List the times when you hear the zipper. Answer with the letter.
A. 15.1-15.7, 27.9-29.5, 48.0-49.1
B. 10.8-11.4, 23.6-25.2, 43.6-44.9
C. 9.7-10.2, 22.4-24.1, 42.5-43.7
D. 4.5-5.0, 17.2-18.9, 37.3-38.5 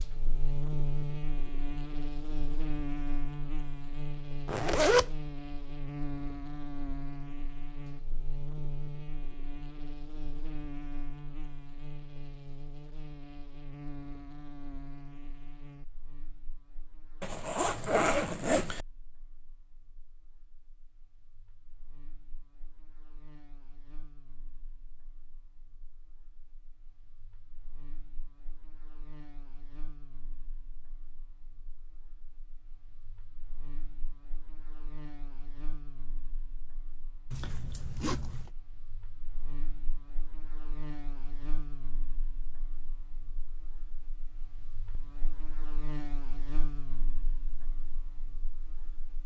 D.